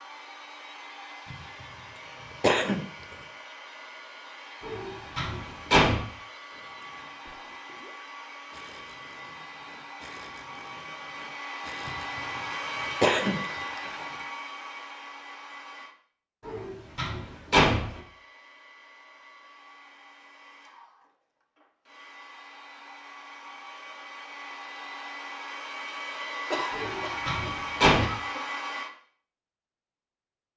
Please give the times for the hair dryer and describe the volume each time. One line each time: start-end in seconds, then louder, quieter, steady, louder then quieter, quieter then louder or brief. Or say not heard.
0.0-15.9 louder
17.8-28.9 louder.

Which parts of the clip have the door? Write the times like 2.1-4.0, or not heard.
4.6-6.0, 16.4-18.0, 26.7-28.1.